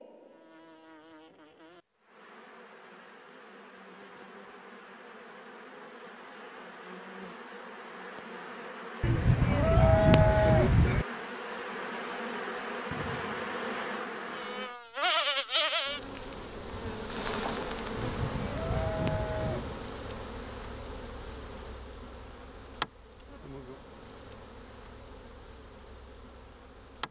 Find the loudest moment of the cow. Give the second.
10 s.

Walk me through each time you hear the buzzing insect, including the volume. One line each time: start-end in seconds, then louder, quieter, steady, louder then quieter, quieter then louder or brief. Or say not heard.
0.0-27.0 louder then quieter.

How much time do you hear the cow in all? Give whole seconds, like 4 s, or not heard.
4 s.